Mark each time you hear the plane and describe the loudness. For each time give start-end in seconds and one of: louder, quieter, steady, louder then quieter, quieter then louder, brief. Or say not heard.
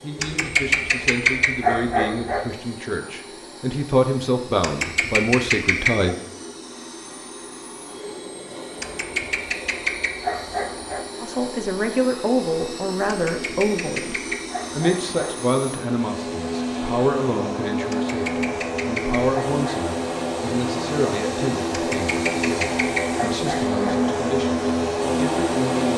0.0-25.9 louder.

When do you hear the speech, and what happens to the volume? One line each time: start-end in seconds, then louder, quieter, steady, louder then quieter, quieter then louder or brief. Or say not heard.
0.0-6.2 louder
11.2-25.9 quieter.